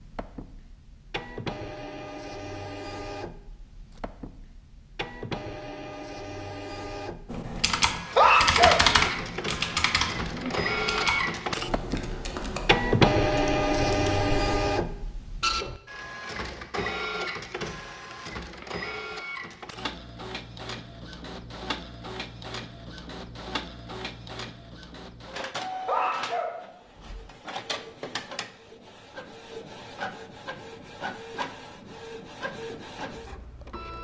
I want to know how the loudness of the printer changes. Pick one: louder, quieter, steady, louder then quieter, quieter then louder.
louder then quieter.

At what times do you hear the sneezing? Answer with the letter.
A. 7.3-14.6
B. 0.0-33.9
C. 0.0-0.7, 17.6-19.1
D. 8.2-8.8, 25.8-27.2
D.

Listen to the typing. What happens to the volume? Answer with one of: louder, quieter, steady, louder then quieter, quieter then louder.
quieter.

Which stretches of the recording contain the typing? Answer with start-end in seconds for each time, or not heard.
7.3-14.6.